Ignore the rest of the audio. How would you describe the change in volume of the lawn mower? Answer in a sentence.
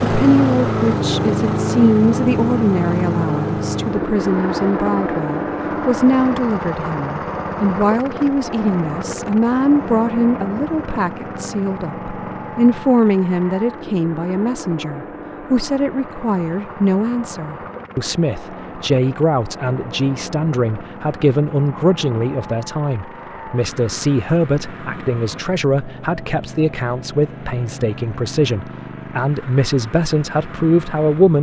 The volume of the lawn mower goes down.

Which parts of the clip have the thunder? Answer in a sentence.
The thunder can't be heard in this clip.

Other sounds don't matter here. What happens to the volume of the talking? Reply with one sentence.
The volume of the talking stays about the same.